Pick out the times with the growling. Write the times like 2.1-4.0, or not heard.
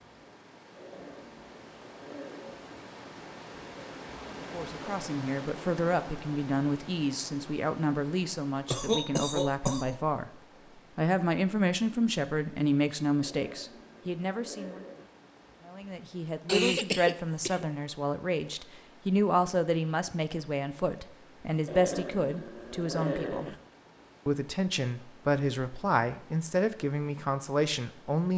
0.8-2.7, 13.2-15.1, 21.6-23.6.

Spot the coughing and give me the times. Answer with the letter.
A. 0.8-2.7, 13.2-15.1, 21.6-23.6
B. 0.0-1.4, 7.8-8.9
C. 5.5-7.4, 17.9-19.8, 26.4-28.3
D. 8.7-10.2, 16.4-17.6
D.